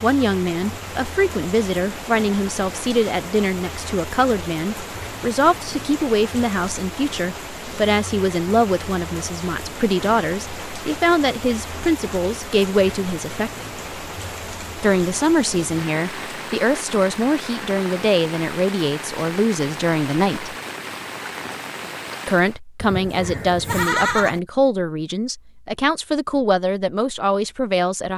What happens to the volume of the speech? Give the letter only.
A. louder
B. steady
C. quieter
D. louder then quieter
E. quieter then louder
B.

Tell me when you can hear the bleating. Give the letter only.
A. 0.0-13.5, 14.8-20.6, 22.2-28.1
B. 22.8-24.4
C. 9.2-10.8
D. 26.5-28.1
B.